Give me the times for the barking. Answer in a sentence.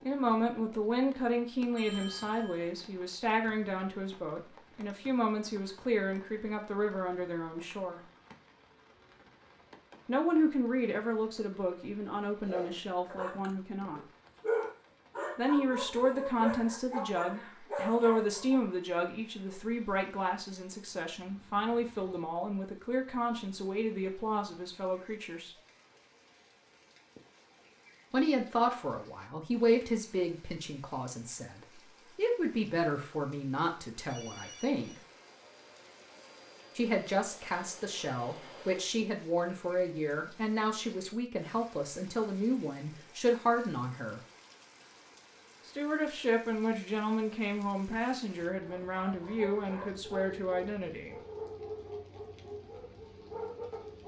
You can hear the barking from 12.2 to 18.6 s and from 48.6 to 54.0 s.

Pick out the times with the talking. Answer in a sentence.
You can hear the talking from 0.1 to 8.0 s, from 10.1 to 14.0 s, from 15.3 to 25.6 s, from 28.1 to 35.0 s, from 36.8 to 44.2 s and from 45.6 to 51.1 s.